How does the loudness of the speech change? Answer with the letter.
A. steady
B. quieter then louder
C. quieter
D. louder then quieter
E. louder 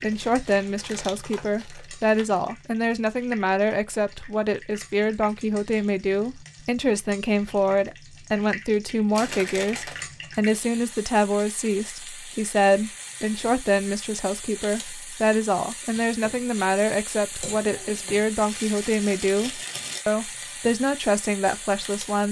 A.